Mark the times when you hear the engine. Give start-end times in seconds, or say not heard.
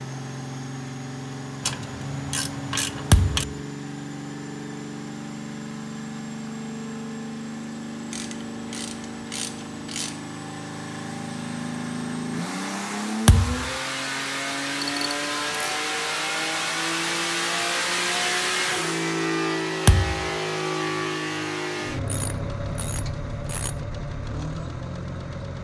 0.0-25.5.